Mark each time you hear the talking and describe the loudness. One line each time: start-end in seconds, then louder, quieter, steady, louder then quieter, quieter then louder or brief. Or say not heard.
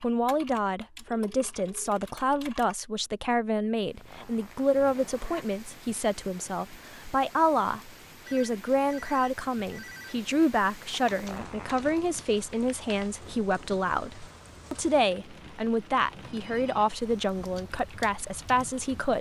0.0-19.1 steady.